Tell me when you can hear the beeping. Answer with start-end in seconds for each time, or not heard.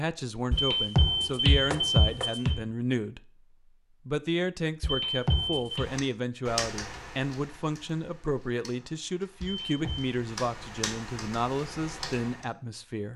0.5-2.6, 4.8-5.8, 9.4-10.2.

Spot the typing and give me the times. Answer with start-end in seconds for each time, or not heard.
5.7-12.4.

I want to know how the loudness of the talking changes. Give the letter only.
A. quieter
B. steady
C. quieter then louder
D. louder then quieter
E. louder
B.